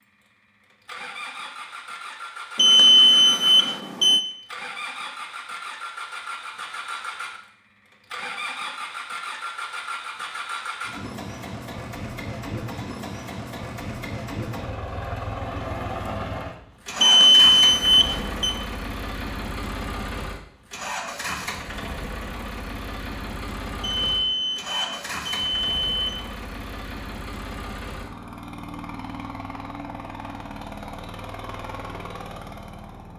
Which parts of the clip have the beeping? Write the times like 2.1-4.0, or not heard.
2.5-4.2, 17.0-18.6, 23.8-25.9.